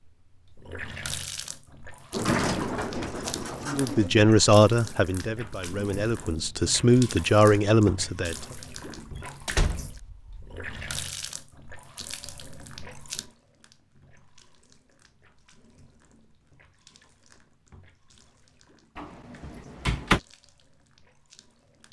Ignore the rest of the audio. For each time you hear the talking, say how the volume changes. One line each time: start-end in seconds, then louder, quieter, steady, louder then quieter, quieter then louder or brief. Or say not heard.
3.6-8.3 quieter then louder.